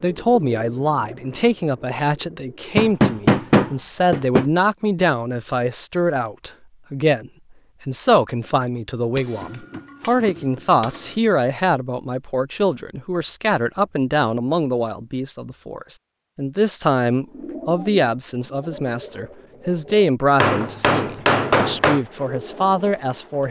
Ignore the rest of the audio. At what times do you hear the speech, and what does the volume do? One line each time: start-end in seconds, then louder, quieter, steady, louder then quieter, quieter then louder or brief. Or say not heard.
0.0-23.4 steady.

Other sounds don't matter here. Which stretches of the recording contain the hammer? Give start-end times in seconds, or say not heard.
2.8-4.5, 9.2-11.2, 20.4-22.0.